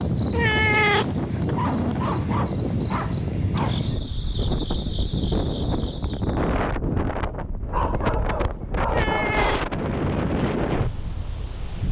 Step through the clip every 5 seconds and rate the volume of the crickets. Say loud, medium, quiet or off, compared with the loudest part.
loud, loud, off.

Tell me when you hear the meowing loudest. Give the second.
1 s.